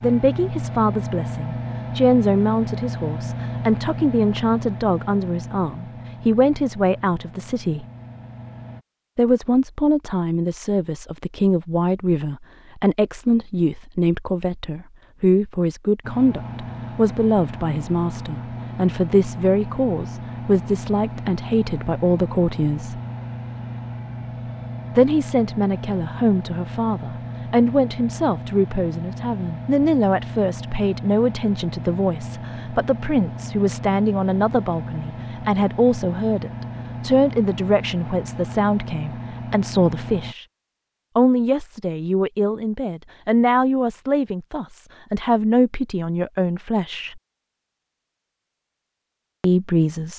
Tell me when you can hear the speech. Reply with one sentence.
You can hear the speech from 0.0 to 7.8 s, from 9.2 to 23.0 s, from 24.9 to 40.5 s, from 41.1 to 47.2 s and from 49.4 to 50.1 s.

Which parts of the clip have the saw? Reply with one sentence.
You can't hear the saw here.